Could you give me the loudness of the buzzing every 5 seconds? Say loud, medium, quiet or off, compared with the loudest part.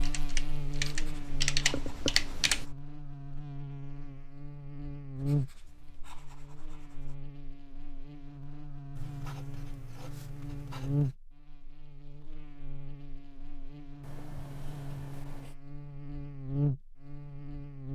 medium, loud, loud, loud.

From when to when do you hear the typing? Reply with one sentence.
You can hear the typing from 0.0 to 2.6 s.